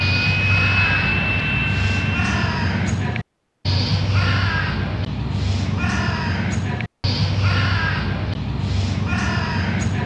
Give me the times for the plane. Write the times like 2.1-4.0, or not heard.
0.0-2.4.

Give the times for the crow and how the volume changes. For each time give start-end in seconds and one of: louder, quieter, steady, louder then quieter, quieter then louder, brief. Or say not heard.
0.0-10.0 steady.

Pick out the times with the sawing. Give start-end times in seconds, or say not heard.
not heard.